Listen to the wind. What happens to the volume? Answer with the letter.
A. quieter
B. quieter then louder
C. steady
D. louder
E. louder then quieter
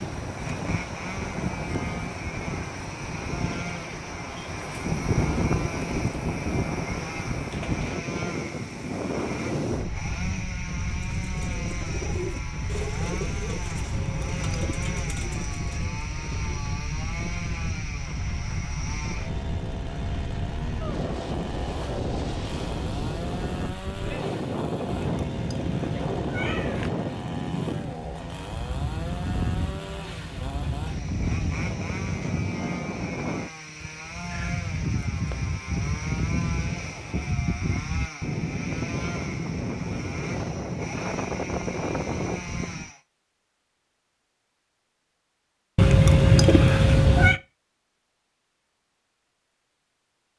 C.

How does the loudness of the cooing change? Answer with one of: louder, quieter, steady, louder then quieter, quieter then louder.
quieter.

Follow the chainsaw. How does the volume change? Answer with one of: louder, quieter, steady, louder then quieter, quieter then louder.
steady.